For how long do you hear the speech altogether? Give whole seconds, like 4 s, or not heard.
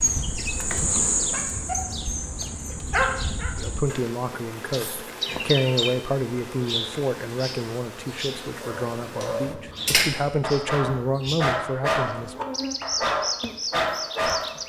9 s.